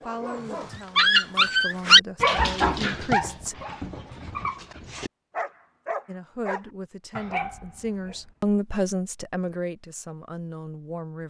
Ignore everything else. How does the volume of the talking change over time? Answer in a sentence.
The volume of the talking goes up, then down.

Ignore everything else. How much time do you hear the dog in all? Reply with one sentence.
You can hear the dog for 8 seconds altogether.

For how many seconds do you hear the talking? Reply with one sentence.
You can hear the talking for 9 seconds altogether.